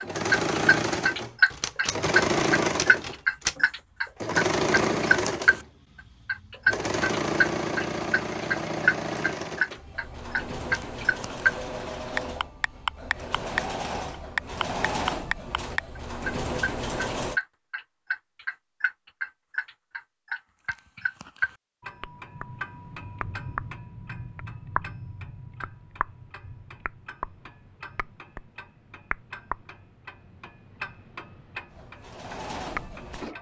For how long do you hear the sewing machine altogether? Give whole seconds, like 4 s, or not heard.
19 s.